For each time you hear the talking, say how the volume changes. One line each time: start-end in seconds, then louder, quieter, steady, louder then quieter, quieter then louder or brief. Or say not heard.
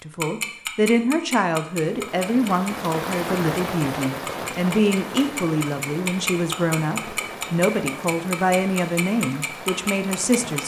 0.0-10.6 steady.